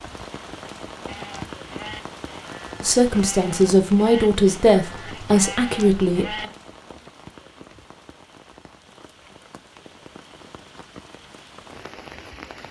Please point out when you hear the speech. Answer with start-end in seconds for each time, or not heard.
2.8-6.5.